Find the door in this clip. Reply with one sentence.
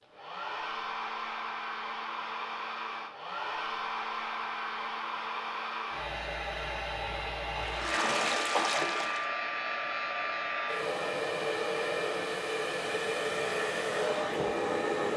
You can't hear the door here.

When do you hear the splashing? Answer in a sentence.
The splashing can be heard from 7.5 to 9.2 s.